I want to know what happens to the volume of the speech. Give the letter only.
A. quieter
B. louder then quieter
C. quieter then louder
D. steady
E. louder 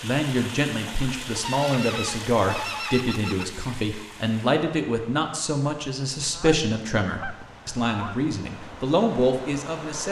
D.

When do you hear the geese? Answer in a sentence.
You can hear the geese from 1.4 to 3.5 s and from 6.2 to 8.2 s.